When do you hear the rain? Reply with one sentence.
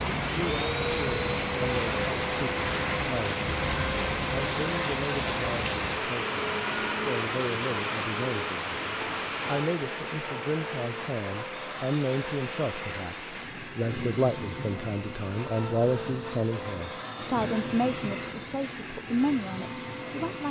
The rain can be heard from 0.0 to 20.4 s.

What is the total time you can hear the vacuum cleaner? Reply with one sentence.
You can hear the vacuum cleaner for 20 seconds altogether.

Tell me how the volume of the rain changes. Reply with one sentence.
The volume of the rain goes down.